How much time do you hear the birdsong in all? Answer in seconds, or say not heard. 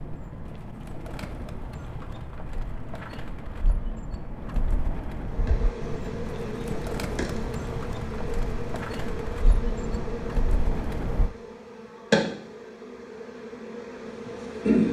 11 s.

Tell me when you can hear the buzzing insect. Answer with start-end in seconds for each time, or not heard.
5.2-14.8.